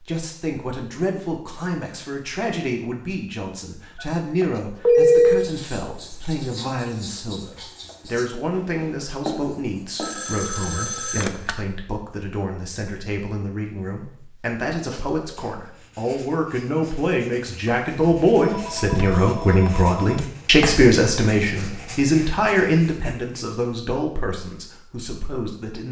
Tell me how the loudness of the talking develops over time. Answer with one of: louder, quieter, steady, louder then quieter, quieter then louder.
louder.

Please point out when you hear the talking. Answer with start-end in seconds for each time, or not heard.
0.0-25.8.